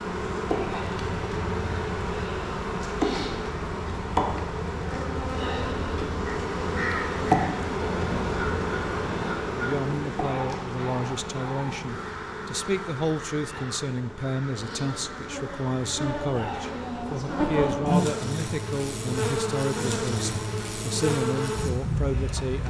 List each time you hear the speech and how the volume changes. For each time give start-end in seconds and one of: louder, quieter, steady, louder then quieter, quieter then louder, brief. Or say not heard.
9.5-22.6 steady.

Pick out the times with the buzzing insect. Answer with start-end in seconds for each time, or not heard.
0.0-22.6.